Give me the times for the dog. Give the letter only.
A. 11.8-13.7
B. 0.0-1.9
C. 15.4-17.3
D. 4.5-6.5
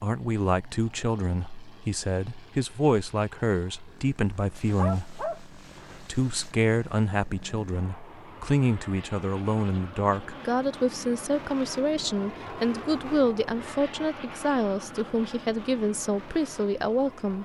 D.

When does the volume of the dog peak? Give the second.
5 s.